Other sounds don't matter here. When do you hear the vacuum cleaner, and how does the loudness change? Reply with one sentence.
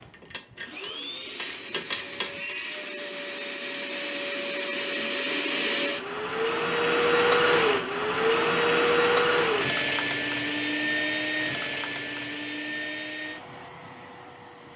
The vacuum cleaner can be heard from 0.0 to 14.7 s, getting louder then quieter.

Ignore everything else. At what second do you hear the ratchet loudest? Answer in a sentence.
The volume of the ratchet peaks at 2 seconds.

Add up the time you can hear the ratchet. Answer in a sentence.
You can hear the ratchet for 3 seconds altogether.